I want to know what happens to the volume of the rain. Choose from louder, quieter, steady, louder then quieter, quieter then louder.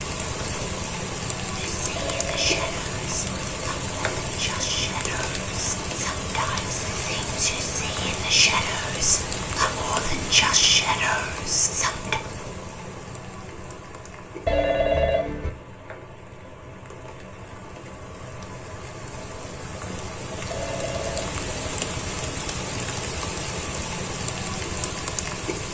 quieter then louder.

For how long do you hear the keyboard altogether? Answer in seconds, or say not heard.
not heard.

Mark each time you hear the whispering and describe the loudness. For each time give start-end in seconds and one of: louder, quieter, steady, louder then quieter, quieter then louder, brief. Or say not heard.
1.6-12.2 louder.